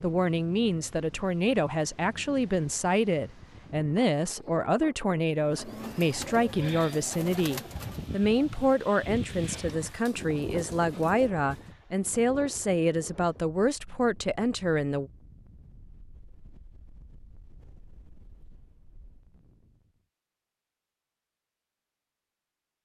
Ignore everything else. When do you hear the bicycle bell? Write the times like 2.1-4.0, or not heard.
not heard.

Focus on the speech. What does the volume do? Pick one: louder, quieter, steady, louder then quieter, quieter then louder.
steady.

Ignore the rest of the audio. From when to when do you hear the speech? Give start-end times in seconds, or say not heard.
0.0-15.1.